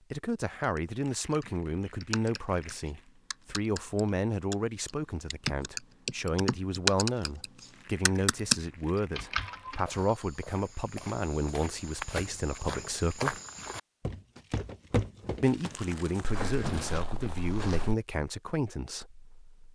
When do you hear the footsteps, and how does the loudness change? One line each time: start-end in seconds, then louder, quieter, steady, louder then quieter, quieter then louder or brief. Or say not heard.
9.8-17.9 louder then quieter.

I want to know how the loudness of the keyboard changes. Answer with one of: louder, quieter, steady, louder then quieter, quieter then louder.
louder.